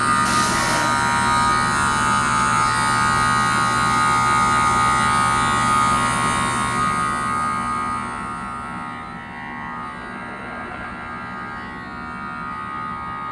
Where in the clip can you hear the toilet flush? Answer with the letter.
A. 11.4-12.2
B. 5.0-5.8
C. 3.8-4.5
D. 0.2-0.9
D.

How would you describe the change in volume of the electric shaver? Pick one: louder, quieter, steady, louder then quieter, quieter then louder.
quieter.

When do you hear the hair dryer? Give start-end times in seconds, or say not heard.
not heard.